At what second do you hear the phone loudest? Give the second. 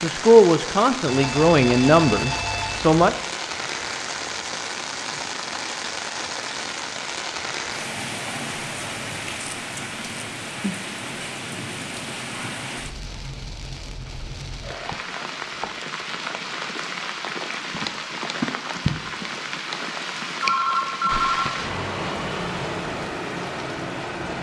21 s.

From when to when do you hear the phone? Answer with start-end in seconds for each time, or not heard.
1.1-3.0, 20.4-21.5.